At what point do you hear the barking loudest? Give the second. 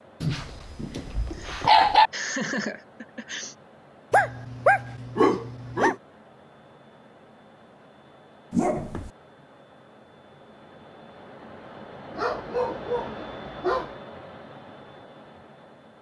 2 s.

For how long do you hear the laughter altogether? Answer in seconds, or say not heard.
2 s.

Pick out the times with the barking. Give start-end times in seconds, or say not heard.
0.2-2.1, 4.1-6.0, 8.5-9.1, 12.2-13.9.